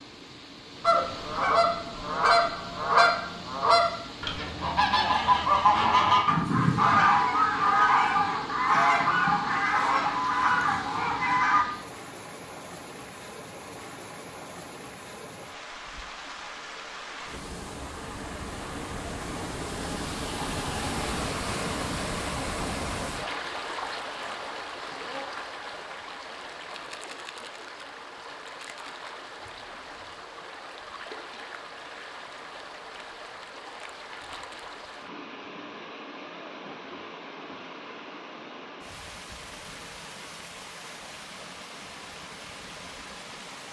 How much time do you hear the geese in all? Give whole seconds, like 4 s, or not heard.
11 s.